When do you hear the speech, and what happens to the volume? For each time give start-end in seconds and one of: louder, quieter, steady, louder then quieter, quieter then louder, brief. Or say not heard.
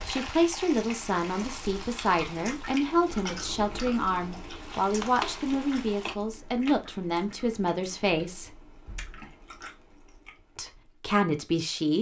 0.0-8.6 steady
10.6-11.9 brief.